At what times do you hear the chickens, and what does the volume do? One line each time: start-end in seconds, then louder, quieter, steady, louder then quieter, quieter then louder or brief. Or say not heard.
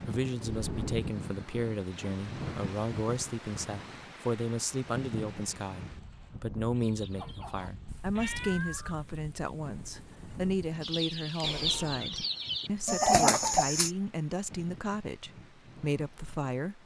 6.8-13.9 quieter then louder.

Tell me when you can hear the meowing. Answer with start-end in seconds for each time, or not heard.
0.5-0.9, 8.2-9.0, 11.4-12.1.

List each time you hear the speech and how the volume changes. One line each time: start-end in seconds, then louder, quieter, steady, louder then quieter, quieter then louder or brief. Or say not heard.
0.0-16.8 steady.